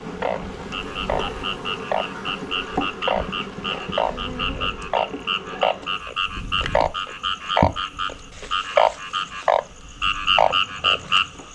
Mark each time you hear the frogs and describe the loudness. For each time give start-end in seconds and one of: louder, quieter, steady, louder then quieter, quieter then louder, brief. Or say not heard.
0.1-11.5 louder.